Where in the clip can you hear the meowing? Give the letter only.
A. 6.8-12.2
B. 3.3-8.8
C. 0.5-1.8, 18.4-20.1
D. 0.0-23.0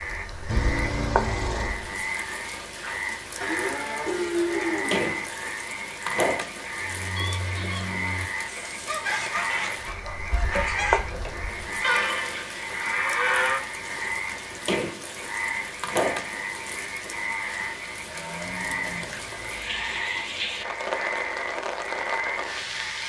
C.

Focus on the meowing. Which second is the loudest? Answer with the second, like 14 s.
1 s.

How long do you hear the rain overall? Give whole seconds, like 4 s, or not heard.
23 s.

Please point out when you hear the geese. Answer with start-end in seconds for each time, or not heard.
6.8-12.2.